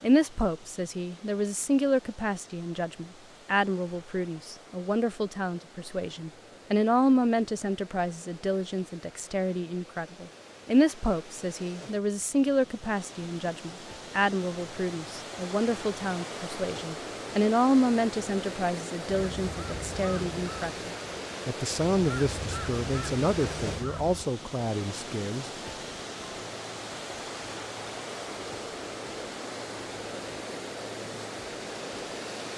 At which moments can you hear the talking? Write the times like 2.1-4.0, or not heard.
0.0-25.5.